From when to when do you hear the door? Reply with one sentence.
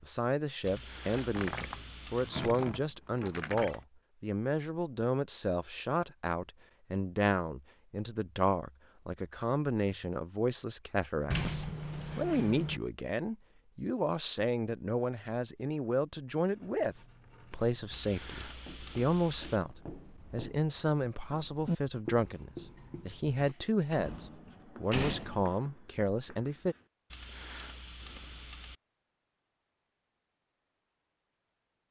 You can hear the door from 1.1 to 3.8 s, from 11.3 to 12.8 s and from 23.9 to 25.4 s.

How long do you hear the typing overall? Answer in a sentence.
The typing can be heard for 5 seconds in total.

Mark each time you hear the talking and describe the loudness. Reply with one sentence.
You can hear the talking from 0.0 to 26.8 s, at a steady volume.